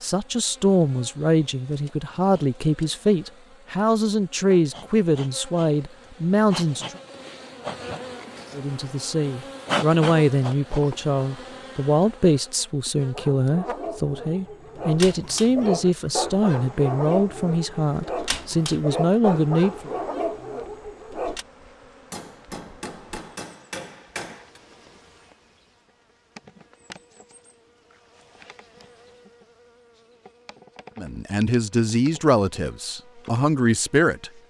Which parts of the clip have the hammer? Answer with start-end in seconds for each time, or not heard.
22.1-24.6.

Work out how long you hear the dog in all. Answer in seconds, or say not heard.
8 s.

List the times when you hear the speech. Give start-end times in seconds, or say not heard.
0.0-7.0, 8.6-19.9, 30.9-34.3.